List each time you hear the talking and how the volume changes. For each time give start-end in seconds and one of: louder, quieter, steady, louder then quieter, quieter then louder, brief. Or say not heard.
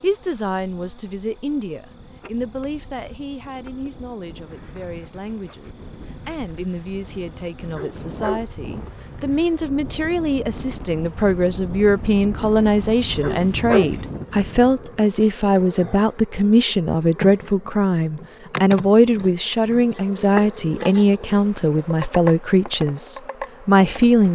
0.0-24.2 louder.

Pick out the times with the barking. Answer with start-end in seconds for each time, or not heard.
7.8-8.5, 13.2-13.9.